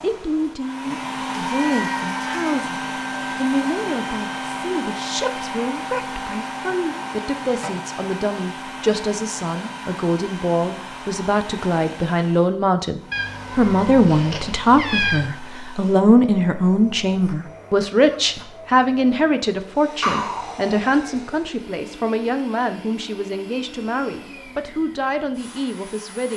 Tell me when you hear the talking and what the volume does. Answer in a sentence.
You can hear the talking from 0.0 to 26.3 s, getting louder then quieter.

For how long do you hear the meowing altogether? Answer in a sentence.
You can hear the meowing for 5 seconds altogether.